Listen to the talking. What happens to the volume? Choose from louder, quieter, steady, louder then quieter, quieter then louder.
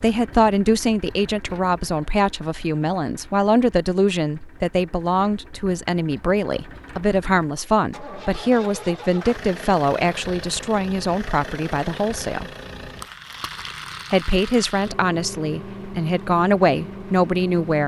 steady.